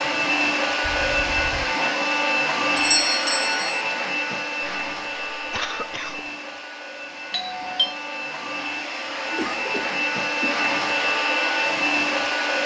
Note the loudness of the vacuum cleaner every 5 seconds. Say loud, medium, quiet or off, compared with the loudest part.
loud, medium, loud.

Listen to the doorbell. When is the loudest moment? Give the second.
3 s.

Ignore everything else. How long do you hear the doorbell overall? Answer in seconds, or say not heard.
2 s.